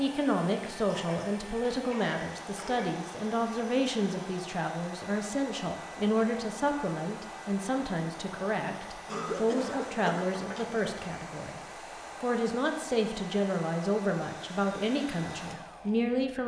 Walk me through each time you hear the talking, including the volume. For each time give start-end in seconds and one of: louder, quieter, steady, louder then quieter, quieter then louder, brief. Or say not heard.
0.0-11.6 steady
12.2-16.4 steady.